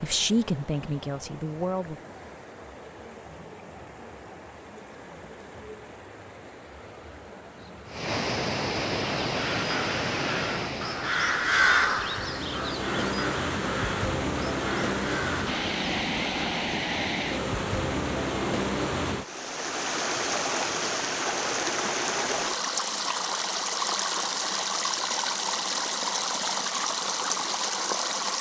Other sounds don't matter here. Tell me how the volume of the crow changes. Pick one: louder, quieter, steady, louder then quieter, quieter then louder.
louder then quieter.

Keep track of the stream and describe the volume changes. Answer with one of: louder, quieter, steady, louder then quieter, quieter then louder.
louder.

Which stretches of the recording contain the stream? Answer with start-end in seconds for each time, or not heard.
0.0-28.3.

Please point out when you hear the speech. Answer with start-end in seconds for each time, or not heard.
0.0-2.0.